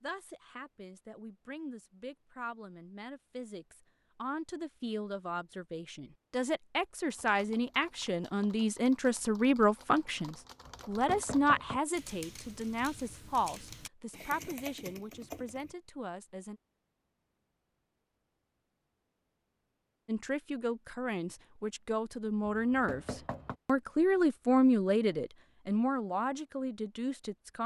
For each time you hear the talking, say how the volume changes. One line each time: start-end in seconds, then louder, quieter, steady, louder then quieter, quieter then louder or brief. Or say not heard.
0.0-16.6 louder then quieter
20.1-27.6 louder then quieter.